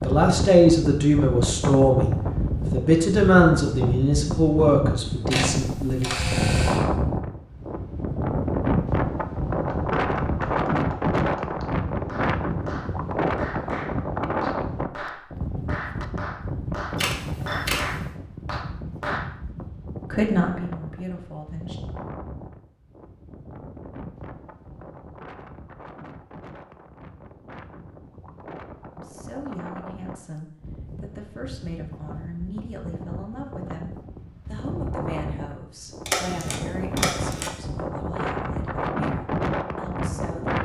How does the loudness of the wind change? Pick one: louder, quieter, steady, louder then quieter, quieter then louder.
quieter then louder.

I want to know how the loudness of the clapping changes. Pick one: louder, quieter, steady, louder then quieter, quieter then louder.
louder.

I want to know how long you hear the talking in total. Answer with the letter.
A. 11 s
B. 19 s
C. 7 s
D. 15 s
B.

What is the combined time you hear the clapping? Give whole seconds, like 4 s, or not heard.
10 s.